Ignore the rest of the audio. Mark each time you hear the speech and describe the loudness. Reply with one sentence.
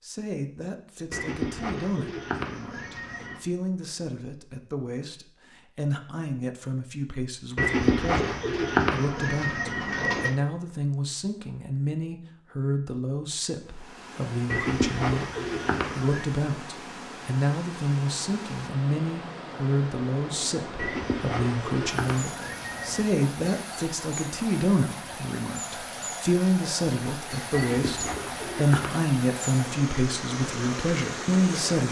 You can hear the speech from 0.0 to 31.8 s, getting louder.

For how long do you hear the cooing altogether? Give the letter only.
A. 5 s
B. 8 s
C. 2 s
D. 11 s
D.